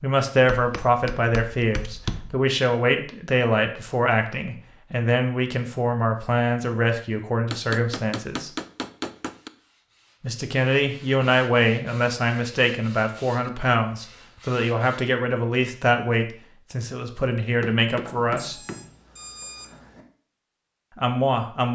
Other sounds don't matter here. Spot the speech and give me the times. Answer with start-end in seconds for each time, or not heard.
0.0-8.5, 10.2-18.6, 20.9-21.6.